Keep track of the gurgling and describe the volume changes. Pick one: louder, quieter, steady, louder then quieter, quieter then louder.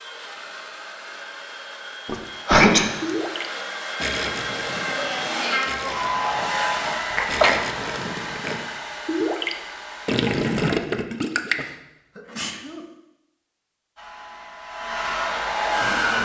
quieter then louder.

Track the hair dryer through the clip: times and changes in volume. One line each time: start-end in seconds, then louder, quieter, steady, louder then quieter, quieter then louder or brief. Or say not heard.
0.0-10.7 louder then quieter
13.9-16.1 brief.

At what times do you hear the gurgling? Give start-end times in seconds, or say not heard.
2.0-11.7.